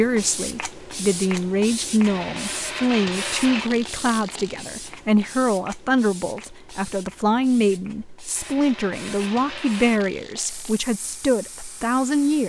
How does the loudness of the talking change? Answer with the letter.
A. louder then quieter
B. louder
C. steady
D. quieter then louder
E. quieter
C.